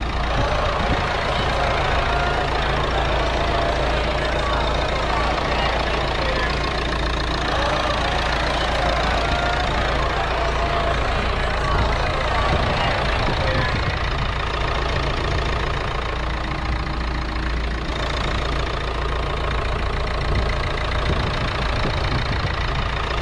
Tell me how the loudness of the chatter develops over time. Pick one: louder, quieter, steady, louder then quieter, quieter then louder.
steady.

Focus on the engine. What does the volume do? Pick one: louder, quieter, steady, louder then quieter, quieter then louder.
steady.